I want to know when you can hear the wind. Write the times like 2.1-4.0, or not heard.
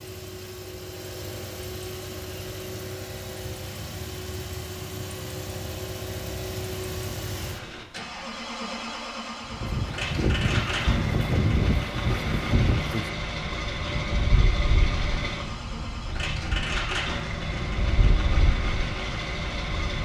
9.5-20.0.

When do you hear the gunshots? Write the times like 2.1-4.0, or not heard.
not heard.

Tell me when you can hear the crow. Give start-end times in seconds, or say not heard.
not heard.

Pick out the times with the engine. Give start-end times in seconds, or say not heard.
0.0-20.0.